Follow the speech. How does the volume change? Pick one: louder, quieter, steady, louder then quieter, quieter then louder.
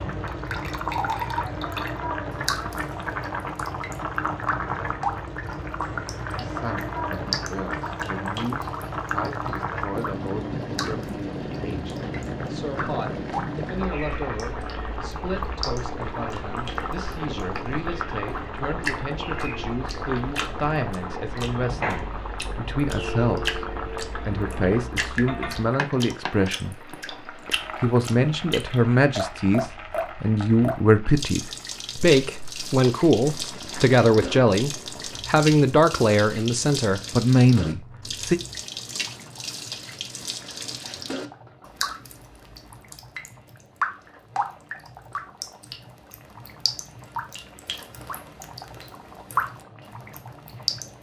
louder.